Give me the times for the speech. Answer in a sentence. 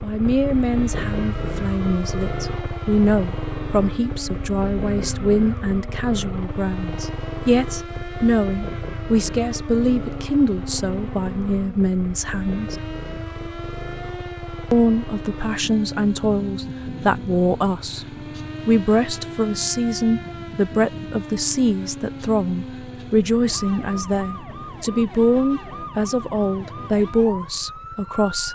You can hear the speech from 0.0 to 12.8 s and from 14.7 to 28.5 s.